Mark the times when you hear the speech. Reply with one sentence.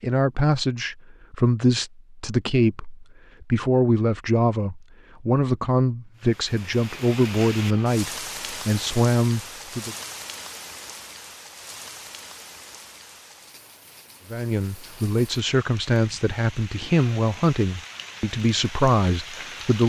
The speech can be heard from 0.0 to 9.9 s and from 14.3 to 19.8 s.